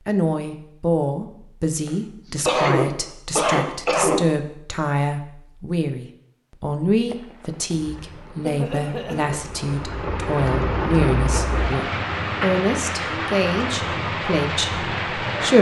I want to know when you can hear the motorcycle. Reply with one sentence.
The motorcycle can't be heard in this clip.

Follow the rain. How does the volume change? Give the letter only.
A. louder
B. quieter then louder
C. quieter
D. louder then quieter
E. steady
A.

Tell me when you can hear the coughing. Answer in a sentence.
You can hear the coughing from 1.9 to 4.2 s and from 8.4 to 9.4 s.